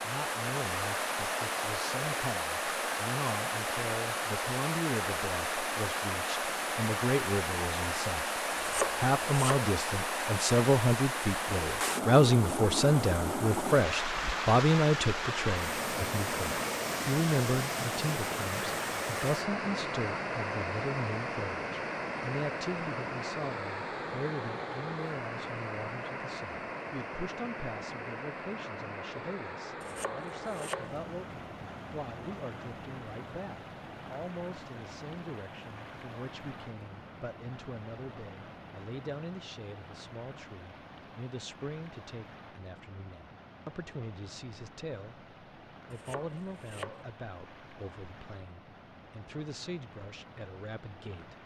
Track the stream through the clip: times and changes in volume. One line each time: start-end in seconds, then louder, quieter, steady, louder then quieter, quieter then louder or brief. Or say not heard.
0.0-51.4 quieter.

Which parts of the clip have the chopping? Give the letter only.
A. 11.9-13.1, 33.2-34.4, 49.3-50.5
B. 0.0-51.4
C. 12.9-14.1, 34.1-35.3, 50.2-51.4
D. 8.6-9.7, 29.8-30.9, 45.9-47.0
D.